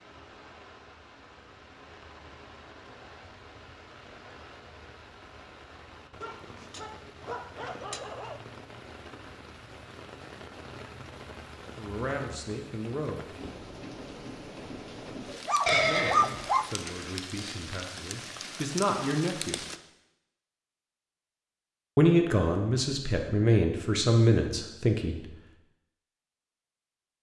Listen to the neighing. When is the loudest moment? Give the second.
16 s.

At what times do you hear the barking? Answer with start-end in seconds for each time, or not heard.
6.2-8.4, 15.2-16.8.